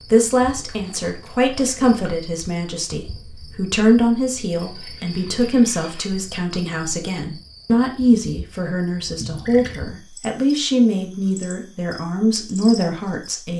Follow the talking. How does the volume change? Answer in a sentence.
The loudness of the talking stays about the same.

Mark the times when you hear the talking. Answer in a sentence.
The talking can be heard from 0.1 to 13.5 s.